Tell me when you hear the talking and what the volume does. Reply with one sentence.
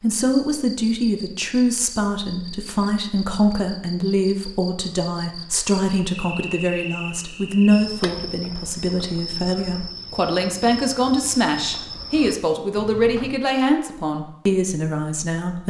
The talking can be heard from 0.0 to 15.6 s, at a steady volume.